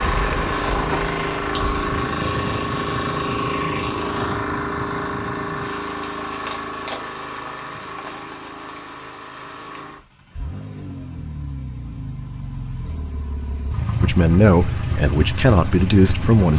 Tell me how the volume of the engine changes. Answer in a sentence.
The volume of the engine goes down, then up.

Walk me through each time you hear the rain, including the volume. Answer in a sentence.
You can hear the rain from 0.0 to 10.1 s, getting quieter.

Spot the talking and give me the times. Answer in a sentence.
You can hear the talking from 14.0 to 16.5 s.